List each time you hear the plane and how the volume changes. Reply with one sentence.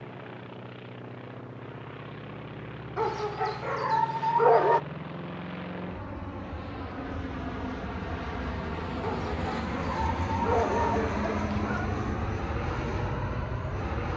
You can hear the plane from 0.0 to 14.1 s, getting louder.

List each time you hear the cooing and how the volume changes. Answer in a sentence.
You can't hear the cooing here.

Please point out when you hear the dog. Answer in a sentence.
The dog can be heard from 3.0 to 4.8 s and from 9.0 to 11.9 s.